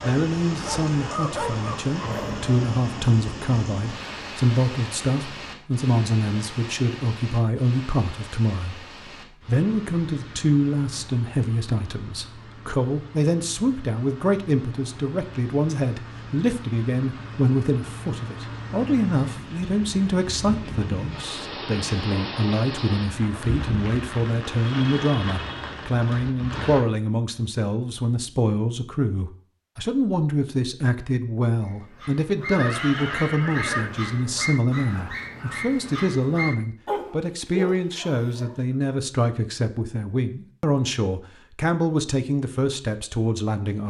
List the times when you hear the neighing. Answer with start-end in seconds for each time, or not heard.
32.5-33.9.